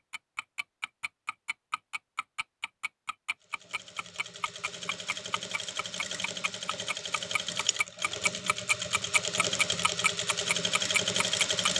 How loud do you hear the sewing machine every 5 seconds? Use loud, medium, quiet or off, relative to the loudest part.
quiet, medium, loud.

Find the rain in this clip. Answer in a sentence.
You can't hear the rain here.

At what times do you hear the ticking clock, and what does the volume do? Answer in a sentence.
You can hear the ticking clock from 0.1 to 11.7 s, getting louder.